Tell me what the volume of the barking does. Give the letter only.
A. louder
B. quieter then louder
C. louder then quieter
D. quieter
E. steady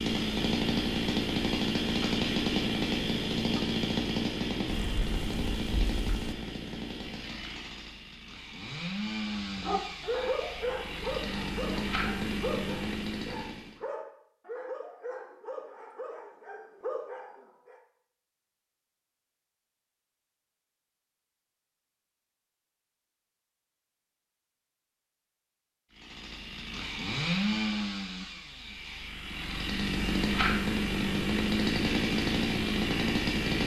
D.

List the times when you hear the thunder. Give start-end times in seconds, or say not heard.
4.7-6.3.